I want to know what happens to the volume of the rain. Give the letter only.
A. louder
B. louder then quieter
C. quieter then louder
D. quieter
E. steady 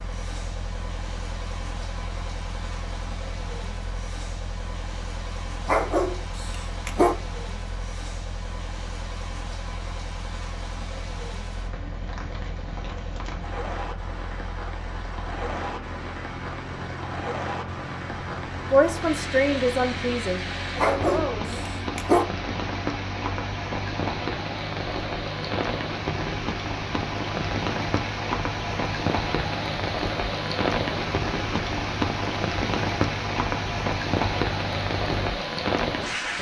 A.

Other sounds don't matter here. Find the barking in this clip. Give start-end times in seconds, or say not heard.
5.7-7.2, 20.8-22.2.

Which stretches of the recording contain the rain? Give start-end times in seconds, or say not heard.
0.0-36.3.